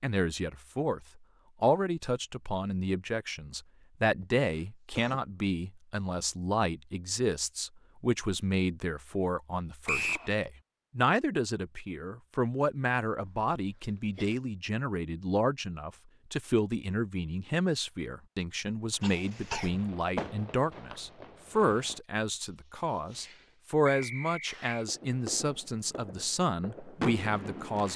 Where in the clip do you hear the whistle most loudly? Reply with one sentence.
The volume of the whistle peaks at 10 seconds.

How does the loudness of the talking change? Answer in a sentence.
The loudness of the talking stays about the same.